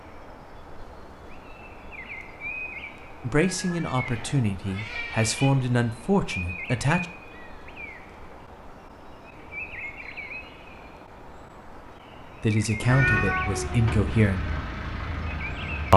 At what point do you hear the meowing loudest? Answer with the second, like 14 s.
13 s.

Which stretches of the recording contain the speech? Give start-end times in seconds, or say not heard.
3.2-7.0, 12.4-14.4.